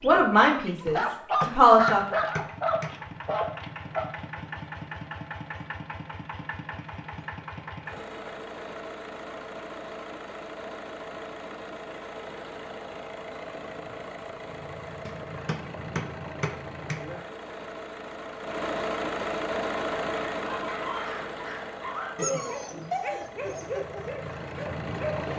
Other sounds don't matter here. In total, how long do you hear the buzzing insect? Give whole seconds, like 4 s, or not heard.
not heard.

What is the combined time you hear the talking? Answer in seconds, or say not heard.
2 s.